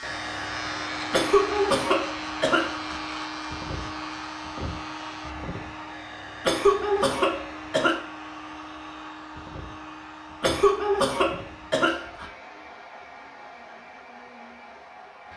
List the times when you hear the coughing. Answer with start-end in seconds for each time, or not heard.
1.1-3.0, 6.5-8.0, 10.4-12.3.